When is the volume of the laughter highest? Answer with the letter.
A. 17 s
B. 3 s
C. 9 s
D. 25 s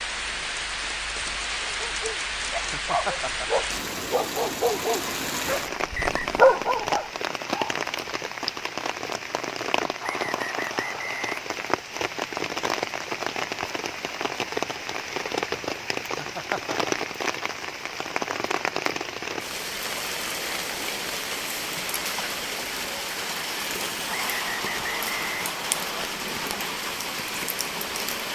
B.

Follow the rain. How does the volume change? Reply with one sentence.
The loudness of the rain stays about the same.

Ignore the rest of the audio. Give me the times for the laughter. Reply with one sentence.
The laughter can be heard from 2.5 to 3.5 s and from 16.0 to 16.9 s.